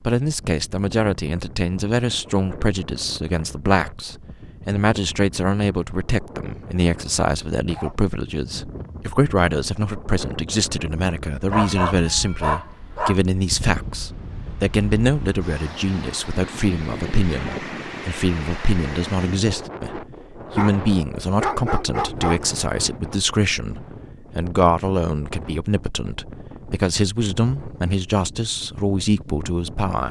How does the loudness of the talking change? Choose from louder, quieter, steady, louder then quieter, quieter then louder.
steady.